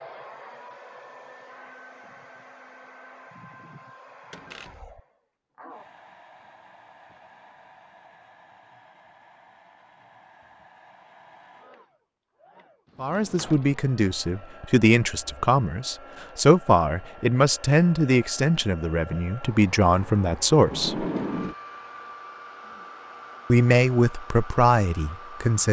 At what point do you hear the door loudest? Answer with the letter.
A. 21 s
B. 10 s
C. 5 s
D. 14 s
A.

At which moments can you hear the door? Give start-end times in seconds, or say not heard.
4.3-5.0, 12.8-13.8, 20.7-21.6.